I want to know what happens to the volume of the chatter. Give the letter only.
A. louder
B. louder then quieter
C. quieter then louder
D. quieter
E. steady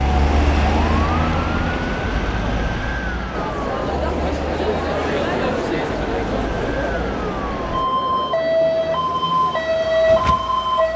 D.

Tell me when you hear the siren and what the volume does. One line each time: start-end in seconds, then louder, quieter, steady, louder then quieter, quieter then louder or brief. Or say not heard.
0.0-10.9 quieter then louder.